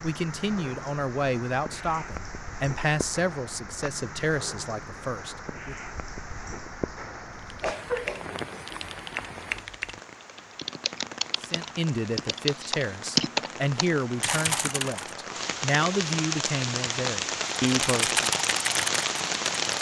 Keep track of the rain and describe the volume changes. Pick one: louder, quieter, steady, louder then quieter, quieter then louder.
louder.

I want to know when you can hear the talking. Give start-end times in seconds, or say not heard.
0.0-5.8, 11.4-18.2.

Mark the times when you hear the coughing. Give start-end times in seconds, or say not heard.
7.6-8.8.